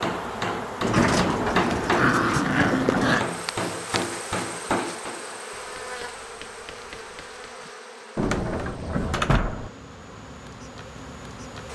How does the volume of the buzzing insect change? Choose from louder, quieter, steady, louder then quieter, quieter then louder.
quieter.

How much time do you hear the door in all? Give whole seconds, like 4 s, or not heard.
4 s.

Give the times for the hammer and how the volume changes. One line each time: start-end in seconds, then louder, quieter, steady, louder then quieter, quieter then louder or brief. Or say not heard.
0.0-7.7 quieter.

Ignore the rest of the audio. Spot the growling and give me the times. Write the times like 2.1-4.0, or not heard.
1.6-3.2.